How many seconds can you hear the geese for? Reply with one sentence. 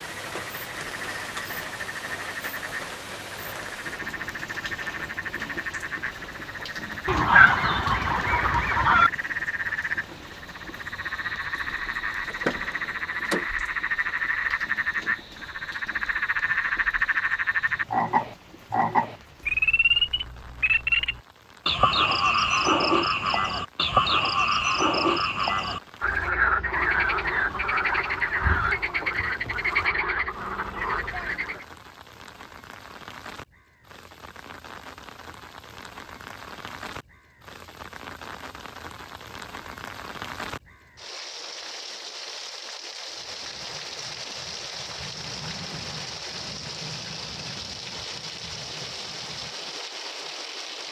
The geese can be heard for 4 seconds in total.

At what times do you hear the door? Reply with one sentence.
You can hear the door from 12.2 to 13.4 s.